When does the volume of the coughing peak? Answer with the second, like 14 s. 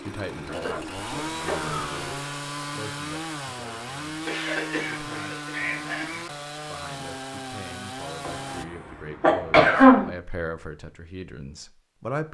10 s.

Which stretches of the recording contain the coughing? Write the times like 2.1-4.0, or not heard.
0.5-2.0, 4.2-6.2, 8.2-10.1.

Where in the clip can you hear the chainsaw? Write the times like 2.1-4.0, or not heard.
0.0-8.7.